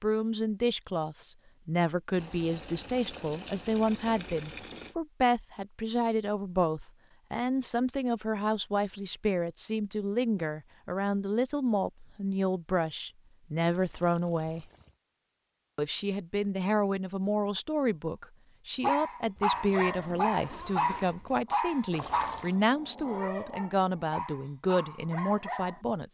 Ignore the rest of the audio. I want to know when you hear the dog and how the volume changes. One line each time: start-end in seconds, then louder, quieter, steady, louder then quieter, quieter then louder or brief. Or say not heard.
18.8-25.8 quieter.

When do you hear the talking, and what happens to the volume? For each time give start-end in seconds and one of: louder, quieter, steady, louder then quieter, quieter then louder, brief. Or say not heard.
0.0-14.7 steady
15.8-26.0 steady.